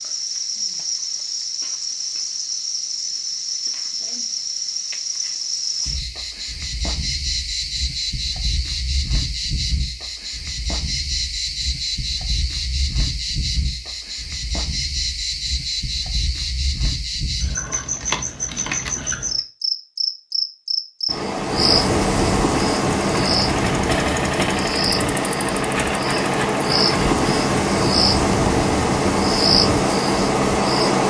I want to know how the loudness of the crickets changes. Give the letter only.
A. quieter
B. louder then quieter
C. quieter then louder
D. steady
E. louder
E.